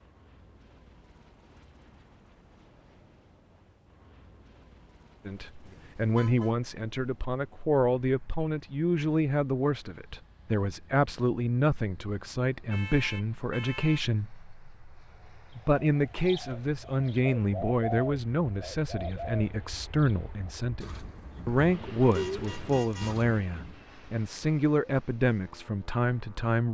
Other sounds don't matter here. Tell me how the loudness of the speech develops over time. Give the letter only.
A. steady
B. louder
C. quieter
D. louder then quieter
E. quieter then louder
A.